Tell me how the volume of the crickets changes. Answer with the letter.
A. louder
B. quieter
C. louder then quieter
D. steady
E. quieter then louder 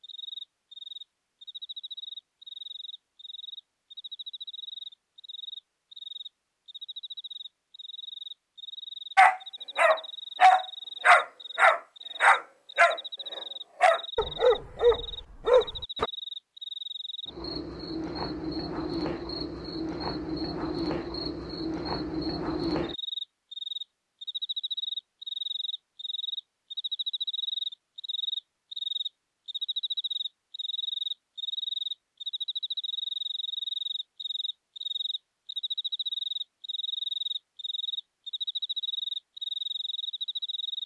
A.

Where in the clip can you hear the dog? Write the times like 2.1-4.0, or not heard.
9.2-16.1.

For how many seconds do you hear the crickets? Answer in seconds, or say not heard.
41 s.